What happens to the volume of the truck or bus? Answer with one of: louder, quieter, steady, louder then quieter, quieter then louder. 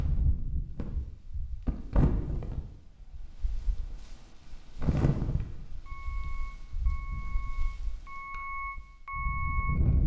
louder.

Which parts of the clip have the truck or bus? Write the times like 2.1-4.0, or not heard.
5.8-10.0.